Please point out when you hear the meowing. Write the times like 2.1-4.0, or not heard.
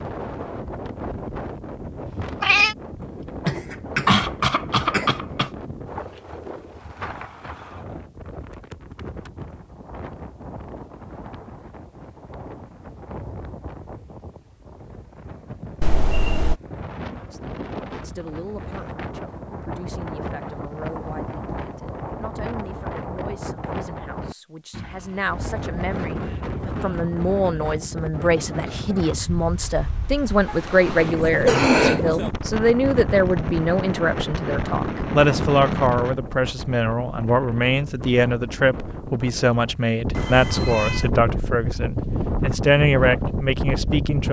2.0-2.8, 15.8-16.6, 40.1-41.1.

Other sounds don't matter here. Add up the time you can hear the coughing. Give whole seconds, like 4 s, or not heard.
4 s.